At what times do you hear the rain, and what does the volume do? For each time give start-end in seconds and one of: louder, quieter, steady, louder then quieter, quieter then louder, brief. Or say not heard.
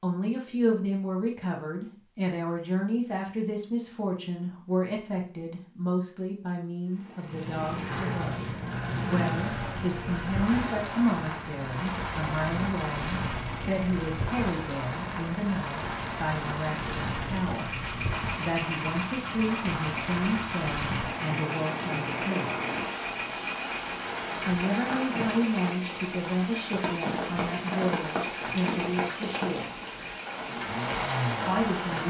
7.2-32.0 steady.